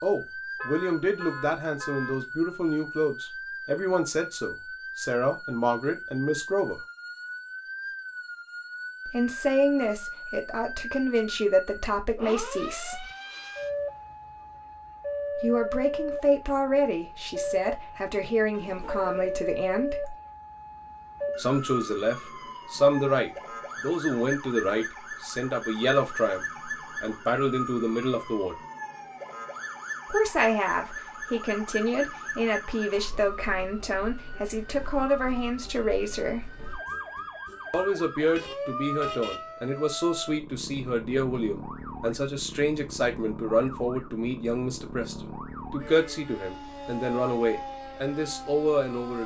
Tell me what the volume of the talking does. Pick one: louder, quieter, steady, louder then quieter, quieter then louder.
steady.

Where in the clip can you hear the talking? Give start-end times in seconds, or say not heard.
0.0-6.8, 9.1-13.1, 15.3-20.1, 21.4-28.6, 30.1-36.5, 37.7-49.2.